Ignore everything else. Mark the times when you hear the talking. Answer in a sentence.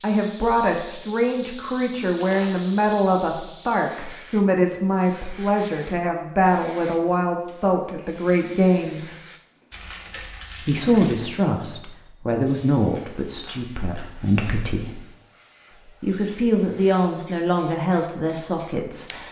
You can hear the talking from 0.0 to 9.2 s, from 10.6 to 14.9 s and from 15.8 to 19.2 s.